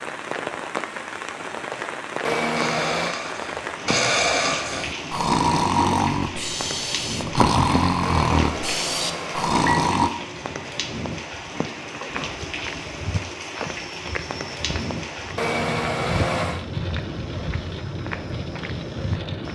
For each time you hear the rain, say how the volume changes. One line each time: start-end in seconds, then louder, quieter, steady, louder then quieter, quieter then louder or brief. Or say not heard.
0.0-19.5 steady.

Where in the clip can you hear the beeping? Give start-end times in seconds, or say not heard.
2.2-3.1, 8.0-9.8, 15.3-16.6.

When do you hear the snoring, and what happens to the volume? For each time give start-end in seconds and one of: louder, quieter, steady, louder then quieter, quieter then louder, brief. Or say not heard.
2.5-10.1 steady.